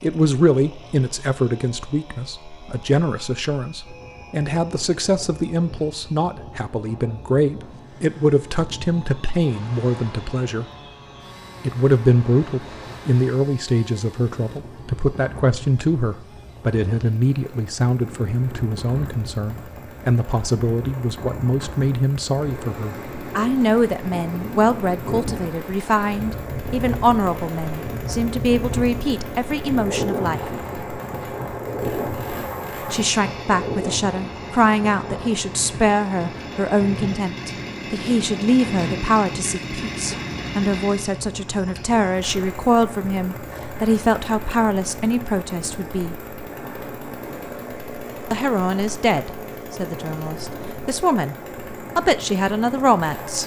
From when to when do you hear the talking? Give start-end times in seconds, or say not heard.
0.0-10.7, 11.6-30.4, 32.9-46.1, 48.3-51.4, 52.0-53.4.